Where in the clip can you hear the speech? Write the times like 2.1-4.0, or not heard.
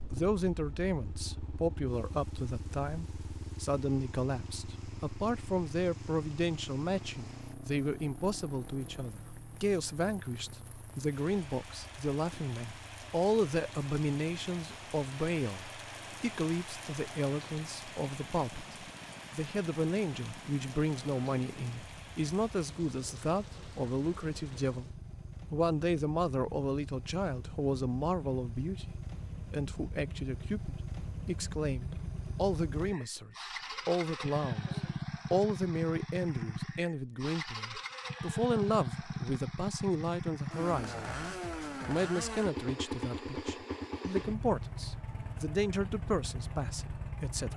0.1-41.1, 41.9-47.5.